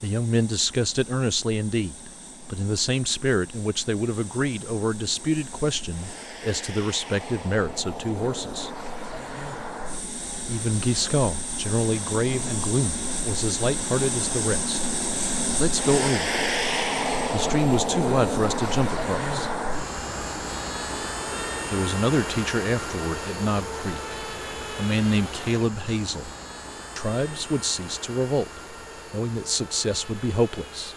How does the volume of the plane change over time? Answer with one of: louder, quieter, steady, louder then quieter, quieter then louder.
louder then quieter.